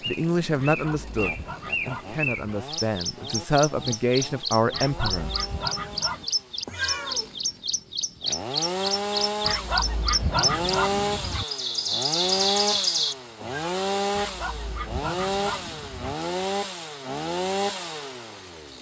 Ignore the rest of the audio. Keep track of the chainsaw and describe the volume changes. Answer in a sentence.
The volume of the chainsaw goes up.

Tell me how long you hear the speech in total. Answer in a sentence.
You can hear the speech for 5 seconds altogether.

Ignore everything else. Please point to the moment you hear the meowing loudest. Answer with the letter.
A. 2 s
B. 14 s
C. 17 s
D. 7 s
D.